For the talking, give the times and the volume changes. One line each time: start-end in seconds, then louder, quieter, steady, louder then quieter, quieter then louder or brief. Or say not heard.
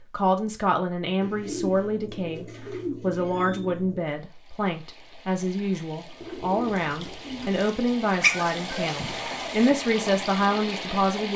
0.1-11.3 steady.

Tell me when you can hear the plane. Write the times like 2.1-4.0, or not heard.
not heard.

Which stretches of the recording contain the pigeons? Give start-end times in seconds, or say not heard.
1.2-4.0, 6.2-7.8.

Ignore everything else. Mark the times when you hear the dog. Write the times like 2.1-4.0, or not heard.
8.2-9.7.